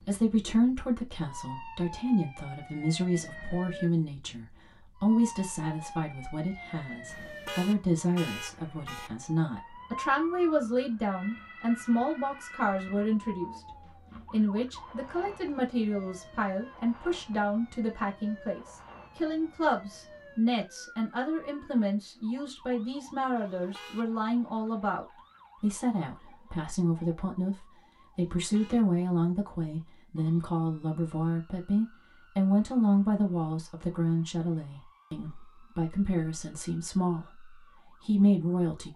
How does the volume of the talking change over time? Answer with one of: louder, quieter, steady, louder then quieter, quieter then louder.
steady.